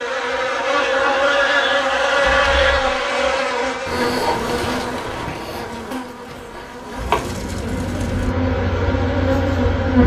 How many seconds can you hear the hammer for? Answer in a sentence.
You can't hear the hammer here.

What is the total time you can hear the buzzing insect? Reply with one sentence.
You can hear the buzzing insect for 10 seconds altogether.